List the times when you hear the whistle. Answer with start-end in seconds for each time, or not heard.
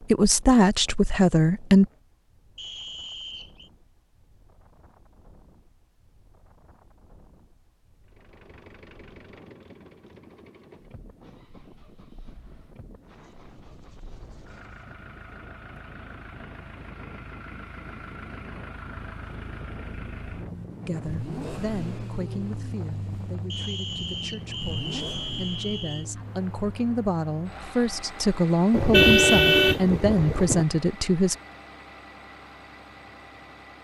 2.5-3.7, 23.5-26.1.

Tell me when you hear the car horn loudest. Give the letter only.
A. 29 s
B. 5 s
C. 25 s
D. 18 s
A.